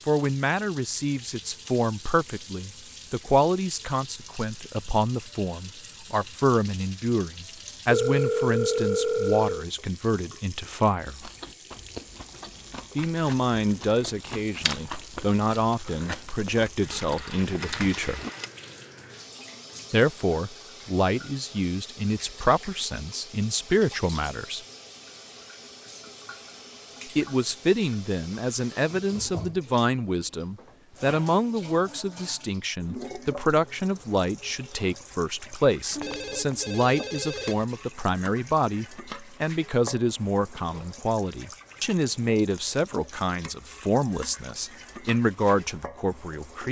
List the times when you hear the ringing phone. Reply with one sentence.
You can hear the ringing phone from 7.9 to 9.7 s, from 16.6 to 18.5 s and from 36.0 to 37.6 s.